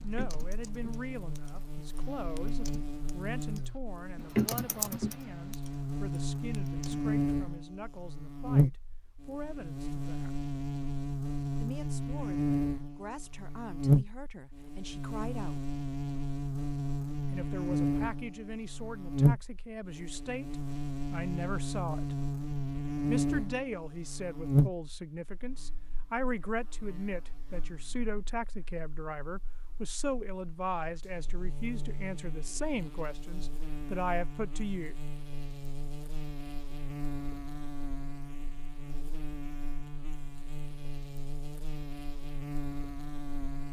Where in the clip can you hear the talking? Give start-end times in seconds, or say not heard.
0.0-10.4, 11.5-15.7, 17.3-22.1, 23.1-35.0.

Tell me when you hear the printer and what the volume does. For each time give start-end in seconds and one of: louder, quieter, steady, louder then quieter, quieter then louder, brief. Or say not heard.
not heard.